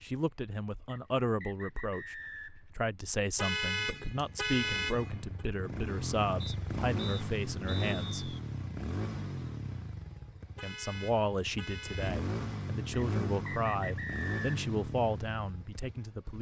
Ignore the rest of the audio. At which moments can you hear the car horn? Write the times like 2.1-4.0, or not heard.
3.4-5.5, 10.6-12.2.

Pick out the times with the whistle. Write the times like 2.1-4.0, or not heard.
0.8-2.7, 6.4-8.4, 12.9-14.5.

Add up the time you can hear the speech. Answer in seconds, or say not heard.
14 s.